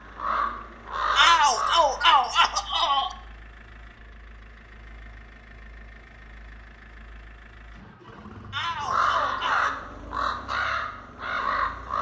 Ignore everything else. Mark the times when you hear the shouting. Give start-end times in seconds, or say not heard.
1.1-3.1, 8.5-9.7.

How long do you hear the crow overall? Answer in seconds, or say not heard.
5 s.